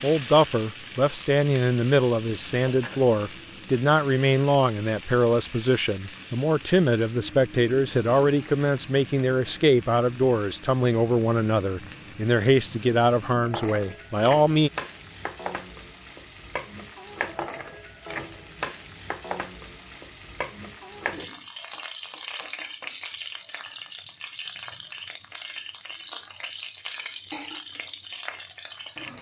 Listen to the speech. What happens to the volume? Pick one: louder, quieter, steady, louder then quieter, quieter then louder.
steady.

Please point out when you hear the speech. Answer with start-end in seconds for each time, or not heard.
0.0-14.7.